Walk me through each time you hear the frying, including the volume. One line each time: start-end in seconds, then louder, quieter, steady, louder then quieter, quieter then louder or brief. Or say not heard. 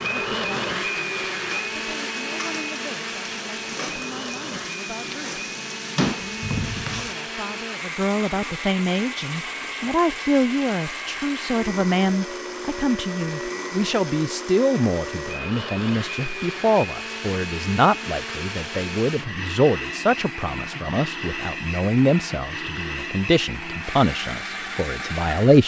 0.0-7.2 louder.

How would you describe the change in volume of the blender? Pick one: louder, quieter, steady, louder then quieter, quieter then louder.
steady.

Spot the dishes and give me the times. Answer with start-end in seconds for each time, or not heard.
not heard.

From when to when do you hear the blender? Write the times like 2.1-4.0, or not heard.
0.0-25.6.